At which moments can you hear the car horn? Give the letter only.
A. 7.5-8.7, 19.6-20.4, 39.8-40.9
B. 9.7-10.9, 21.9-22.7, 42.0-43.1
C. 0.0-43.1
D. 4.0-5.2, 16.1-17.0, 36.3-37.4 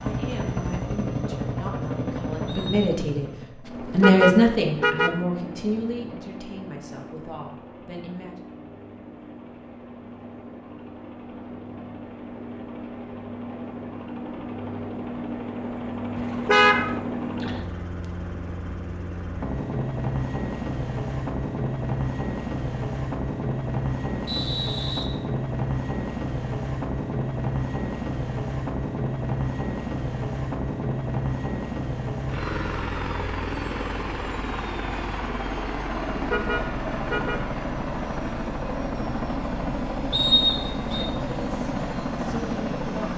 D.